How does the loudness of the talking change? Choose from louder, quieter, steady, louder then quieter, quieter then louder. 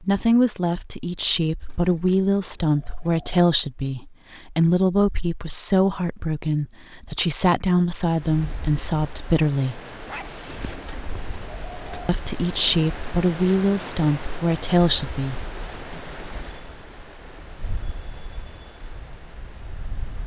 steady.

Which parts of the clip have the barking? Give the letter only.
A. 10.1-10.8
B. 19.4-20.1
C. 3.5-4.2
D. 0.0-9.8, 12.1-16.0
A.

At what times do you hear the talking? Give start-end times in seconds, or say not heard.
0.0-9.8, 12.1-16.0.